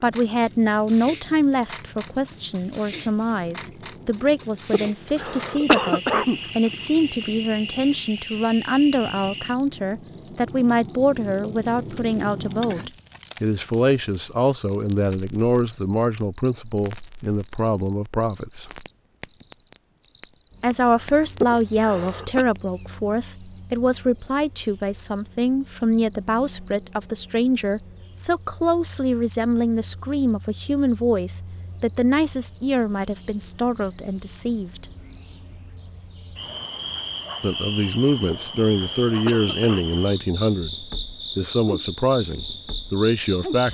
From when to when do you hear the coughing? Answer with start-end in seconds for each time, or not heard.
4.7-6.4, 21.4-22.4, 38.2-39.9.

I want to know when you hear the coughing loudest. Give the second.
6 s.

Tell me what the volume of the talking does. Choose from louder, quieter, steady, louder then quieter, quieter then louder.
steady.